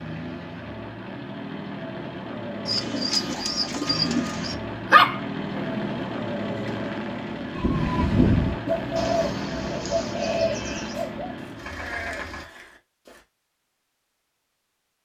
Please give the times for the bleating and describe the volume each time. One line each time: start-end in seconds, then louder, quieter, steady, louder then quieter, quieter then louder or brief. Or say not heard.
7.5-13.2 quieter then louder.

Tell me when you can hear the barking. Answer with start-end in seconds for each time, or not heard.
3.1-6.0.